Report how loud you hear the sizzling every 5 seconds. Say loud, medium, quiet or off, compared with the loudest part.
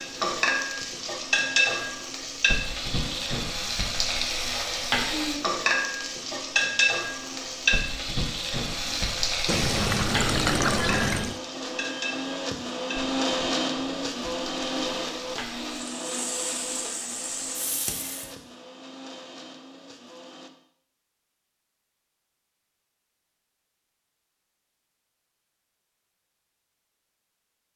loud, loud, medium, medium, off, off.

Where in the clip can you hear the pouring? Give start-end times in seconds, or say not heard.
9.4-11.4.